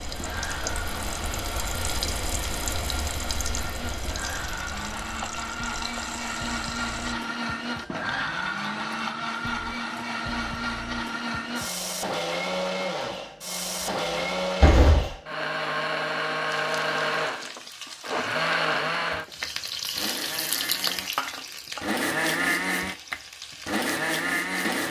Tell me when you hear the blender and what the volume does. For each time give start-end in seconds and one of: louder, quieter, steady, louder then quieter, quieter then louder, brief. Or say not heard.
0.0-24.8 louder.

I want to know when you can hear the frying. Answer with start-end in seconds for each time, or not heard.
0.0-7.2, 16.4-24.6.